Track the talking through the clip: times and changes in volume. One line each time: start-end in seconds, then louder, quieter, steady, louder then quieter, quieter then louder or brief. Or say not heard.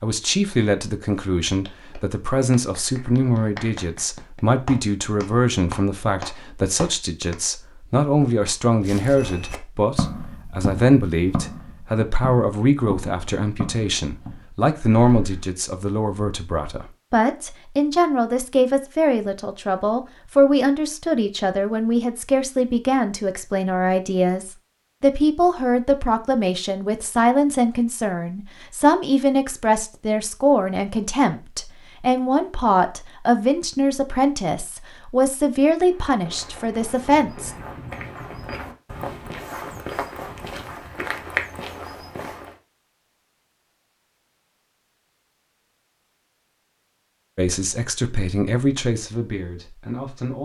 0.0-37.5 steady
47.4-50.3 brief.